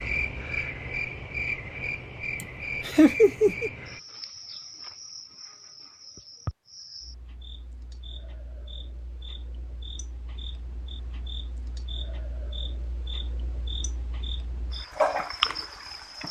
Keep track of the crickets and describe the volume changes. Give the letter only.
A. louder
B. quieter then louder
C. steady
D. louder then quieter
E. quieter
B.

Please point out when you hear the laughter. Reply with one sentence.
You can hear the laughter from 2.4 to 3.7 s.